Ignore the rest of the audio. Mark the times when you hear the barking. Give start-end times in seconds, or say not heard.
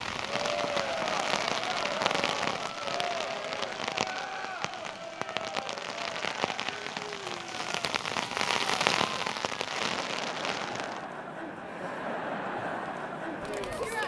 not heard.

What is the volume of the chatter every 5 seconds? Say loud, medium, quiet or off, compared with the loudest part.
loud, medium, loud.